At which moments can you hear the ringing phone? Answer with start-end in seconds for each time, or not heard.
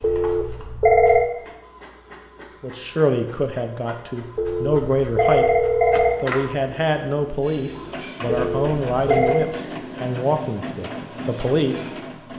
0.0-1.3, 4.3-6.2, 8.2-9.5.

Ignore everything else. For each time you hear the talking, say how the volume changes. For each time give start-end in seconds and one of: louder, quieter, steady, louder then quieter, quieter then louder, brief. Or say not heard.
2.6-5.5 brief
6.2-12.1 steady.